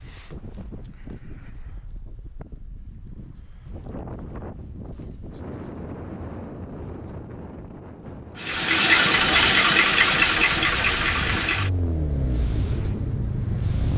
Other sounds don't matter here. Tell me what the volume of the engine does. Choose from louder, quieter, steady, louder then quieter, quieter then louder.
quieter.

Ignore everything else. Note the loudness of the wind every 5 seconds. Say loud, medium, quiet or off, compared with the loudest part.
medium, loud, loud.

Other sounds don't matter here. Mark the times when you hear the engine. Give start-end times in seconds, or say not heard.
8.3-13.9.